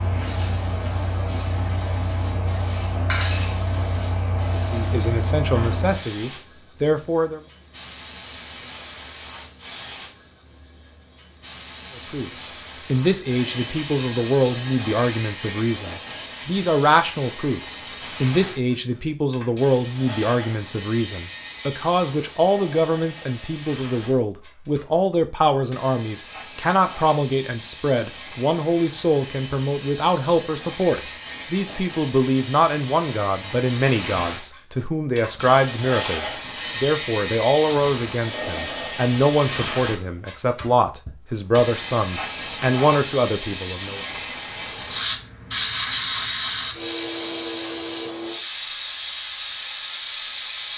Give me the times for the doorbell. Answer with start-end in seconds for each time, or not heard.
not heard.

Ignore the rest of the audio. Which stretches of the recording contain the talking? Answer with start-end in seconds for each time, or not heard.
4.5-7.4, 12.1-44.0.